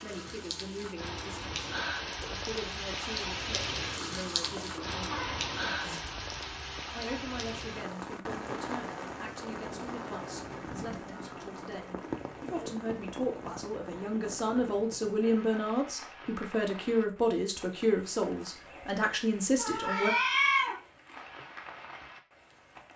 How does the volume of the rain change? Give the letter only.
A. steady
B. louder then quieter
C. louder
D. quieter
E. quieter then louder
D.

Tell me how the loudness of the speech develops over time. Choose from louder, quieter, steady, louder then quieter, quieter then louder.
louder.